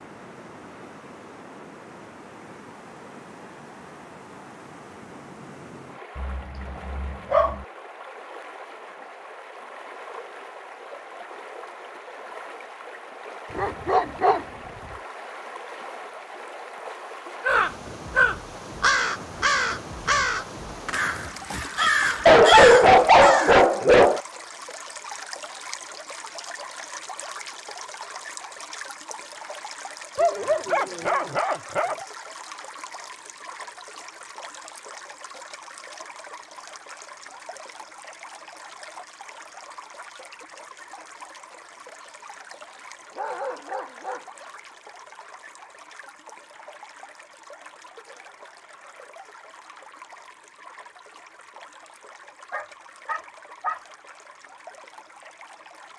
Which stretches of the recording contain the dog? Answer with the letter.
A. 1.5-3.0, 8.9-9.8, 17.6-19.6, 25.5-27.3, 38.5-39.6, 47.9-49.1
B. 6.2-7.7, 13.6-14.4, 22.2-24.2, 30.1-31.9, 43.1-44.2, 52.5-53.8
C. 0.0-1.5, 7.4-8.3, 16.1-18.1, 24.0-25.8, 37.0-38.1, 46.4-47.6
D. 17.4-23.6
B.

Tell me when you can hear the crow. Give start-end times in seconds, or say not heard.
17.4-23.6.